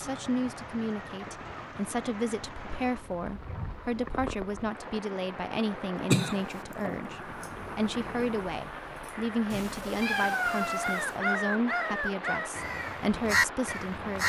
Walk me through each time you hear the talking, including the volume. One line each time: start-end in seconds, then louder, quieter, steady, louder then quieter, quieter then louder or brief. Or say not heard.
0.0-14.2 steady.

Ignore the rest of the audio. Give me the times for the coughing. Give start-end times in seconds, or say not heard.
6.0-7.1.